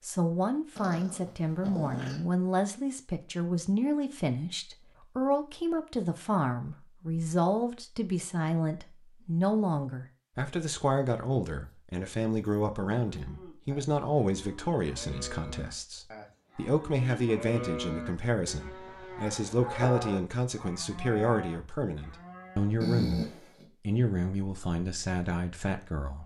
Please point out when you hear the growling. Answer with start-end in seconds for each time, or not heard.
0.8-2.2, 22.8-23.6.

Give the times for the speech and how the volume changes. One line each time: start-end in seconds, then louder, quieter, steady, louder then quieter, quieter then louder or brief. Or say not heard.
0.0-23.2 steady
23.9-26.2 brief.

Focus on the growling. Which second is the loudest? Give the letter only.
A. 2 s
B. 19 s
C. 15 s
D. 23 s
D.